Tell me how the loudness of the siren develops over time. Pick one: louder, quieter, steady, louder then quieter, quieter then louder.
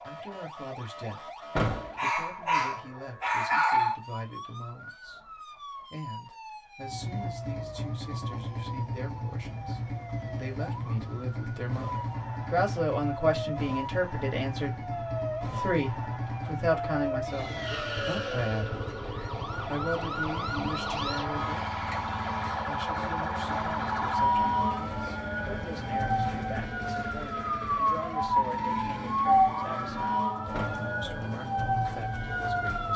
louder.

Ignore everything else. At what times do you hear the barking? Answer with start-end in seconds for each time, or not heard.
1.9-4.0.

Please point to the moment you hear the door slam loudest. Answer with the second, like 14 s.
2 s.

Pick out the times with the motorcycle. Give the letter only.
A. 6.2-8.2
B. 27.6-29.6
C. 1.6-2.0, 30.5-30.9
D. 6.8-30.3
D.